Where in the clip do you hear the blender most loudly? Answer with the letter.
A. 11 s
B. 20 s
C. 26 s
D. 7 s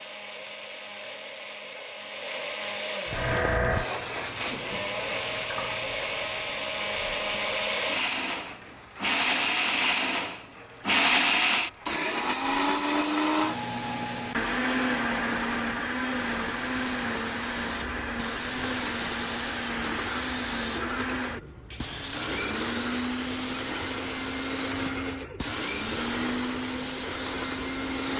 A.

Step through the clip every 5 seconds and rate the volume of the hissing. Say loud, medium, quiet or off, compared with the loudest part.
loud, medium, quiet, loud, loud, loud.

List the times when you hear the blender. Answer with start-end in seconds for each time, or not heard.
0.0-28.1.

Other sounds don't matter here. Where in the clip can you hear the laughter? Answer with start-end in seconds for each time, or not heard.
not heard.